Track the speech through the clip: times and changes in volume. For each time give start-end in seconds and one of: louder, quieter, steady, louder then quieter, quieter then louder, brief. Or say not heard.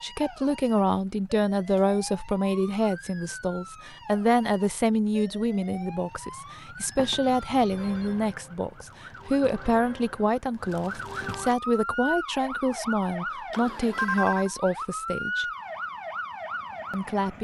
0.0-15.4 steady
16.9-17.3 brief.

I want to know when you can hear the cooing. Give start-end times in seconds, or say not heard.
not heard.